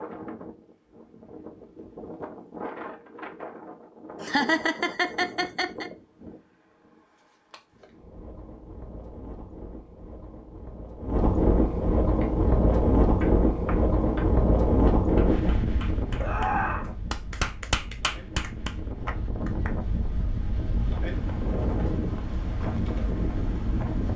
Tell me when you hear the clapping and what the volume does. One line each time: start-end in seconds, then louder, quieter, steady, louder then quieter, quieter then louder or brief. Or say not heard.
12.2-19.7 louder.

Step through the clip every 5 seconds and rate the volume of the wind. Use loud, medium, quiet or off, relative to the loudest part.
quiet, quiet, loud, medium, medium.